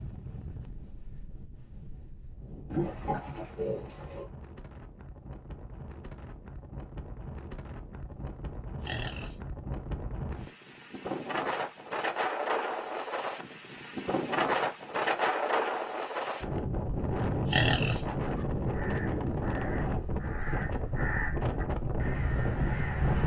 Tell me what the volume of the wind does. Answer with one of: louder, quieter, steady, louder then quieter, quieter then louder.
louder.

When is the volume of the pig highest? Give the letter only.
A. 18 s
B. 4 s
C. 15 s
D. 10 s
A.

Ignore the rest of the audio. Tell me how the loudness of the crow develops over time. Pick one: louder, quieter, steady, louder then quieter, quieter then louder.
louder.